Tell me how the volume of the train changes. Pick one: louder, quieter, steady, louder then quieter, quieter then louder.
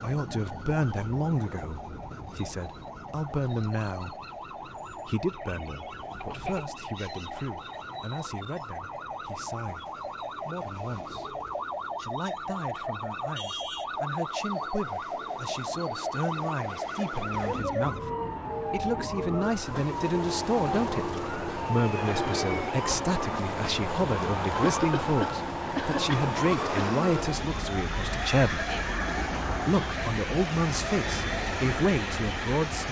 louder.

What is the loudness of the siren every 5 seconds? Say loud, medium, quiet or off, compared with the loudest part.
medium, medium, loud, loud, loud, loud, medium.